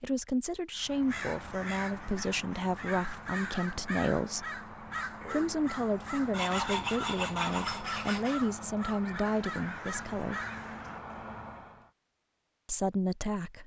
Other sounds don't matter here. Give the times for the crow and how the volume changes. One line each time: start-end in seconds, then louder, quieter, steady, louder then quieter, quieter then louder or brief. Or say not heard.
0.7-11.9 steady.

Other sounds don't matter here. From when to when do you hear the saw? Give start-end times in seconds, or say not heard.
6.3-8.4.